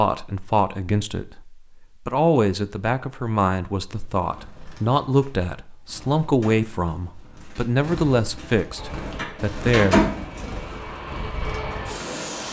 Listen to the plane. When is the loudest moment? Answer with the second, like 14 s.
12 s.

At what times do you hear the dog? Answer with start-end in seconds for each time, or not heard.
not heard.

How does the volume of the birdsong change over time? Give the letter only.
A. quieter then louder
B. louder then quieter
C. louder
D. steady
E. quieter
B.